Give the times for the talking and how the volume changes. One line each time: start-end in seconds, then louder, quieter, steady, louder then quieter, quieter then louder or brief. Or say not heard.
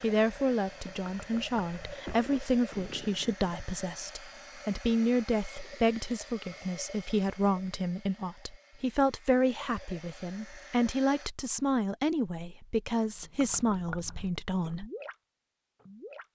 0.0-14.8 steady.